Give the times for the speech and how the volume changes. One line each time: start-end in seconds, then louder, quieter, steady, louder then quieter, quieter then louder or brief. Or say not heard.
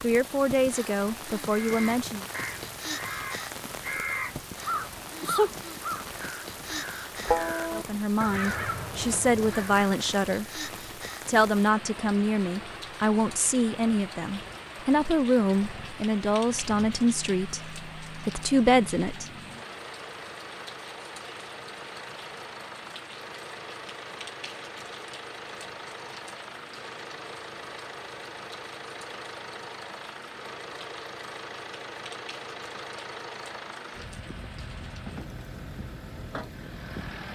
0.0-2.2 brief
7.7-10.4 brief
11.2-19.2 steady.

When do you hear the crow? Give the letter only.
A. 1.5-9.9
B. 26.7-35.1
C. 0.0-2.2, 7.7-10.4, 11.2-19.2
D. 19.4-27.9
A.